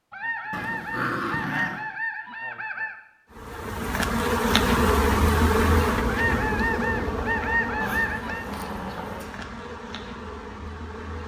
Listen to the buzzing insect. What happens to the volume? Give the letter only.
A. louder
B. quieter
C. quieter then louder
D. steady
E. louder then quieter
B.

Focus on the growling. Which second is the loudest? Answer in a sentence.
The loudest moment of the growling is at 1 second.